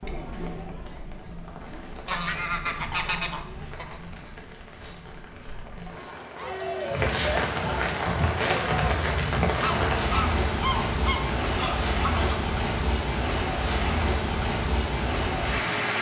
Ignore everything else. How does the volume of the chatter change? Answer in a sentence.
The volume of the chatter goes down, then up.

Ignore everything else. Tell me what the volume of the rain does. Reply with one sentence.
The loudness of the rain goes up.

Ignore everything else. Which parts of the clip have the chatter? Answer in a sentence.
You can hear the chatter from 0.0 to 9.0 s.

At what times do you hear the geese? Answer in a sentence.
The geese can be heard from 2.0 to 4.0 s and from 9.4 to 12.4 s.